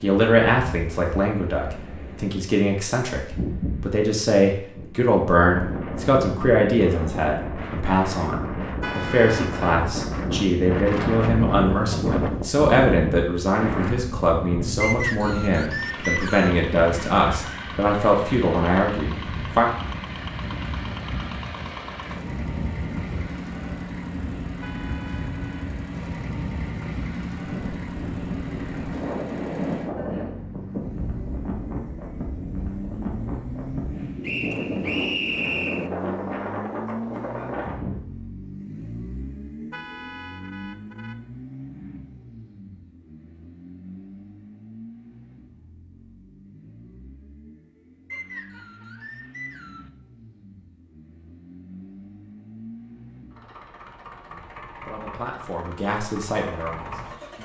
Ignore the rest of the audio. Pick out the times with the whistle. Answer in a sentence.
The whistle can be heard from 14.8 to 16.6 s, from 34.2 to 35.9 s and from 48.1 to 49.9 s.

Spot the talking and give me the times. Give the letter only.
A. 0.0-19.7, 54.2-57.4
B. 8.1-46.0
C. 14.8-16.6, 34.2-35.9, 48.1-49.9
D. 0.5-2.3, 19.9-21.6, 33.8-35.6
A.